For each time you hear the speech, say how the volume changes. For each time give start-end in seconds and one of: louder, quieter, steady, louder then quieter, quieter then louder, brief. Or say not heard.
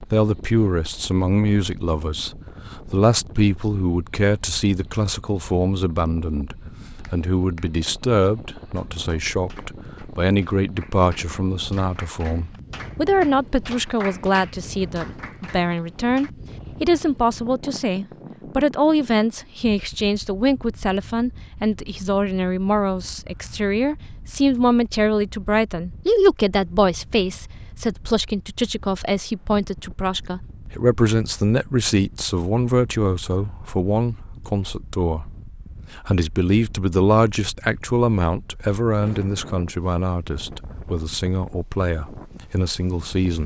0.0-43.4 steady.